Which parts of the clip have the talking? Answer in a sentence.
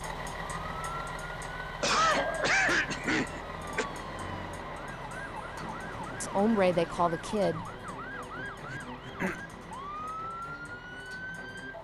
The talking can be heard from 6.2 to 7.6 s.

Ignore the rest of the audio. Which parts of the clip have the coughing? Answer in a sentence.
You can hear the coughing from 1.8 to 3.9 s and from 8.7 to 9.3 s.